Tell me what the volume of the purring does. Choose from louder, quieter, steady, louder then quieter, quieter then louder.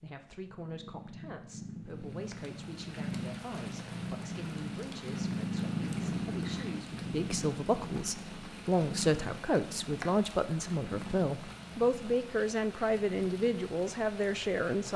louder then quieter.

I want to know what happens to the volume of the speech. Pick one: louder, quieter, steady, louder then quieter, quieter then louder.
louder.